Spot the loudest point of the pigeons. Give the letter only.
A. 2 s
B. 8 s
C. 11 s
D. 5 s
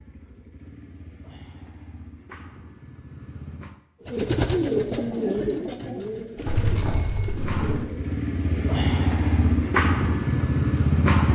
D.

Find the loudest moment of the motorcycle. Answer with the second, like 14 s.
11 s.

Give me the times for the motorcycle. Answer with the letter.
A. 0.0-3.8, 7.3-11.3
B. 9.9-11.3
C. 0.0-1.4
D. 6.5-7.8
A.